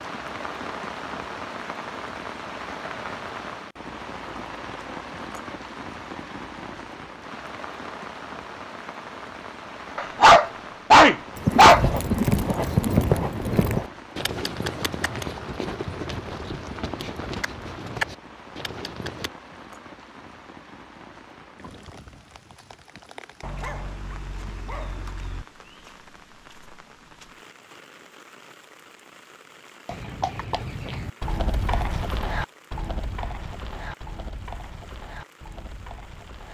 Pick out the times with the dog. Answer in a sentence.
You can hear the dog from 9.9 to 11.8 s and from 23.4 to 25.4 s.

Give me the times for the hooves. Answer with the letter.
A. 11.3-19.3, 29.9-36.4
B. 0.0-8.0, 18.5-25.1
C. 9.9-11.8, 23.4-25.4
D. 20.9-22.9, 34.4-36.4
A.